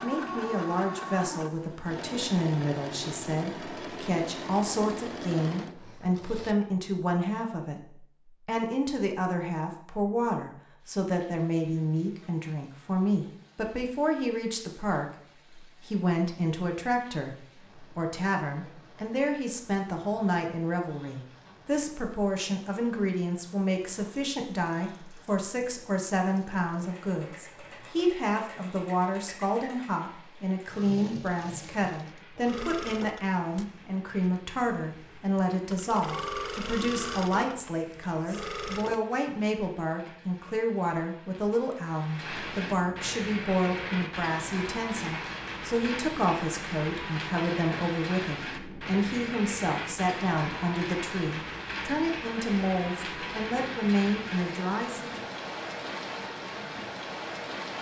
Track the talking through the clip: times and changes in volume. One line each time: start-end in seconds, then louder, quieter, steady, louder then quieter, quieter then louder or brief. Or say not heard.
0.0-55.2 steady.